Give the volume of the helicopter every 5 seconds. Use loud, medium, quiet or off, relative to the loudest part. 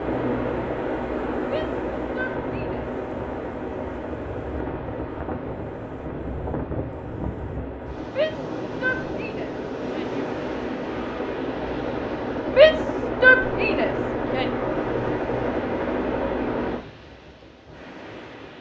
loud, medium, loud, loud.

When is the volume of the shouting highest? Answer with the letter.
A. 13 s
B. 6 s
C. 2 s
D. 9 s
A.